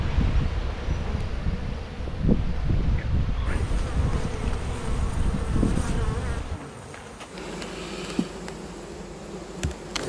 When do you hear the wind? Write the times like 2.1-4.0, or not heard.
0.0-6.6.